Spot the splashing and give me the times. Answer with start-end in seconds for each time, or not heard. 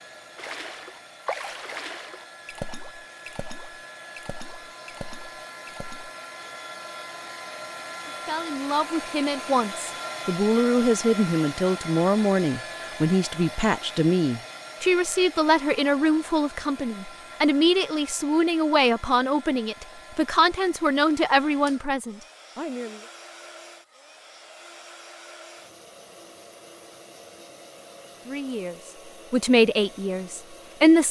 0.3-6.1.